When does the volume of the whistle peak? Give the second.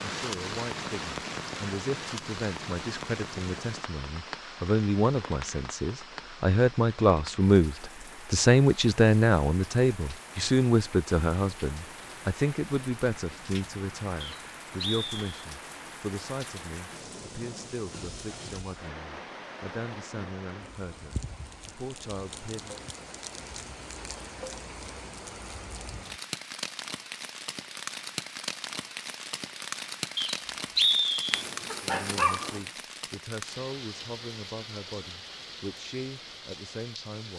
31 s.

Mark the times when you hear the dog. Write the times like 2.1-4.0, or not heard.
31.3-32.7.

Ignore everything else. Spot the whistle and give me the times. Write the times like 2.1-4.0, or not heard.
14.2-15.4, 30.1-31.4.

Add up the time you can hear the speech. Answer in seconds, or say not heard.
28 s.